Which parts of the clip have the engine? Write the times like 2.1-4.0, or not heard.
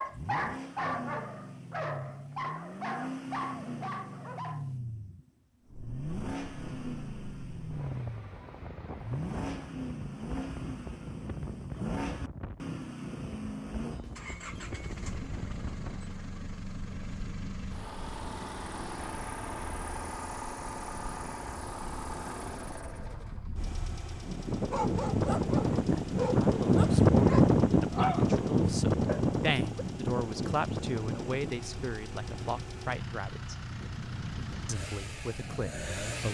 0.0-36.2.